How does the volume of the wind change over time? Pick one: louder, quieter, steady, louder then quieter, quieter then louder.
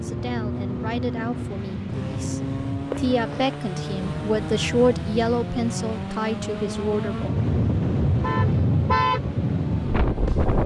louder.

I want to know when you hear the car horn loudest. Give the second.
9 s.